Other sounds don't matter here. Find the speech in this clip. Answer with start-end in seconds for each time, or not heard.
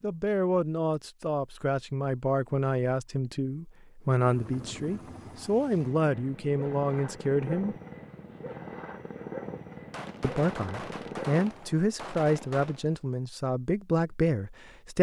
0.0-7.8, 10.2-14.9.